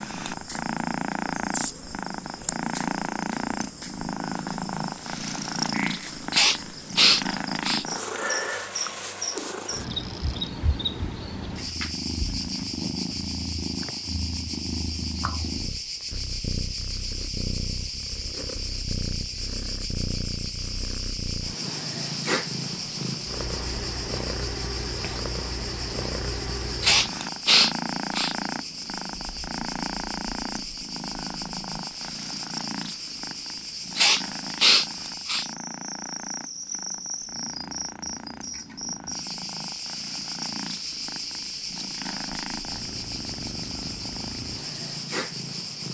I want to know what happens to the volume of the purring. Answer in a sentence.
The volume of the purring goes down.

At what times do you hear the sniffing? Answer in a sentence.
The sniffing can be heard from 6.3 to 7.8 s, from 26.8 to 28.4 s and from 34.0 to 35.5 s.